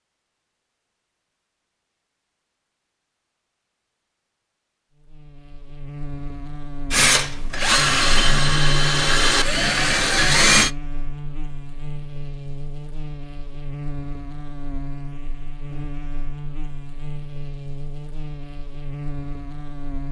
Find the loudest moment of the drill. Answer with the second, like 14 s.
10 s.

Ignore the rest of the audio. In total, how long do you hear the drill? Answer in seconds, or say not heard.
4 s.